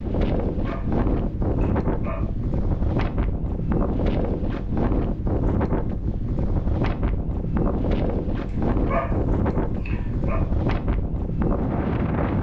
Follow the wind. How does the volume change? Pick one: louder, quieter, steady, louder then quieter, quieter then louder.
steady.